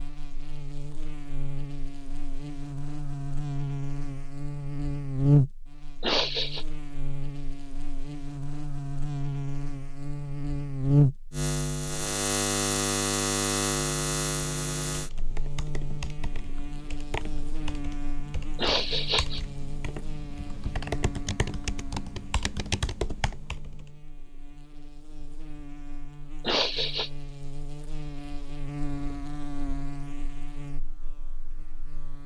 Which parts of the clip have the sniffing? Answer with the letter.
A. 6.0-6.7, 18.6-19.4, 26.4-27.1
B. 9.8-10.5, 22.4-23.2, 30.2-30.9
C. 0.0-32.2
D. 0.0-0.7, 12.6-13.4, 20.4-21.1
A.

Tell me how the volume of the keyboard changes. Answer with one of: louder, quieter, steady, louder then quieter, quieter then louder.
louder.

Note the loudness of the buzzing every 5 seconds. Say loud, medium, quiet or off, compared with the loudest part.
medium, loud, loud, quiet, quiet, quiet, quiet.